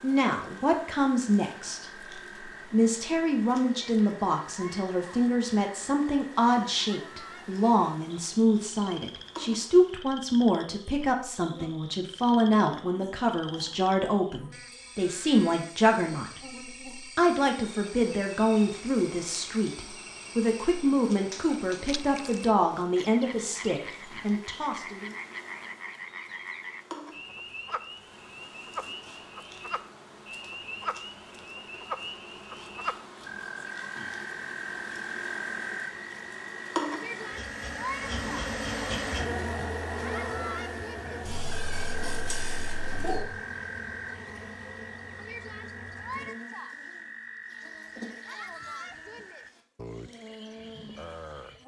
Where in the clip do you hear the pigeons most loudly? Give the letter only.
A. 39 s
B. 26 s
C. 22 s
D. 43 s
D.